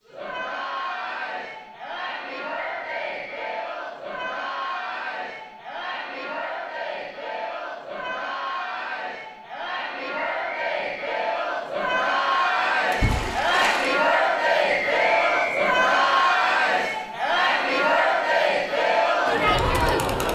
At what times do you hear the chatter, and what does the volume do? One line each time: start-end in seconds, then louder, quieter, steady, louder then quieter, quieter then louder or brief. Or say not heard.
0.0-20.3 louder.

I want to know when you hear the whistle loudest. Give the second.
15 s.